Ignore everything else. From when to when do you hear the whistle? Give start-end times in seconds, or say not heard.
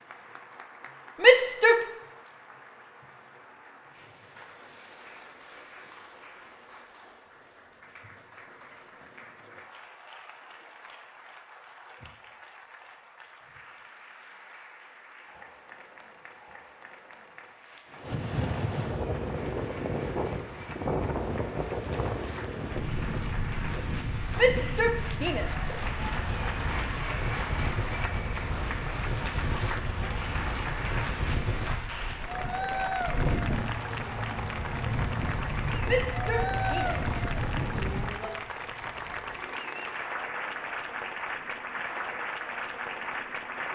not heard.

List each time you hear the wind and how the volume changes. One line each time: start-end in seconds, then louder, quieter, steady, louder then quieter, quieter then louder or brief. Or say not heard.
17.9-43.7 quieter.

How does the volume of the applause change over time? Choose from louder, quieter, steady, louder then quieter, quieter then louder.
louder.